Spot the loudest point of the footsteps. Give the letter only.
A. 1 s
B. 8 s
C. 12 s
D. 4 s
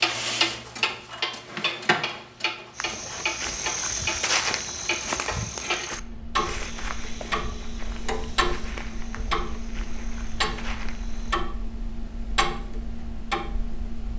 D.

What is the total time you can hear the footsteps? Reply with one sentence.
You can hear the footsteps for 9 seconds altogether.